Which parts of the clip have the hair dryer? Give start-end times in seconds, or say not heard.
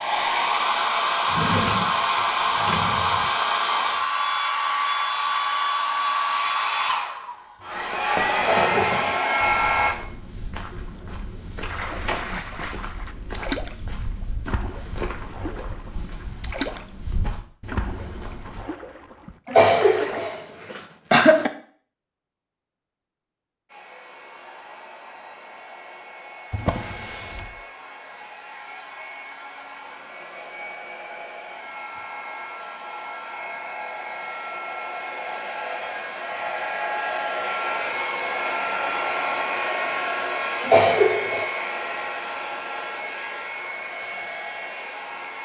0.0-9.9, 23.6-45.4.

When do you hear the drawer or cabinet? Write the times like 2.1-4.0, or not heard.
1.2-3.3, 26.5-27.6.